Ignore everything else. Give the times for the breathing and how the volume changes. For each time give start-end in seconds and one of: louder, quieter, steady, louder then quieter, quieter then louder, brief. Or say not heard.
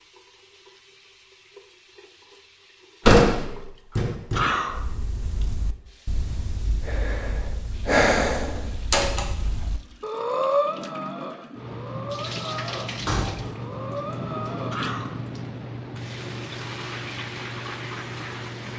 4.7-14.8 louder then quieter.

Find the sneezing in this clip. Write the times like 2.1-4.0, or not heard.
4.3-4.8, 14.7-15.2.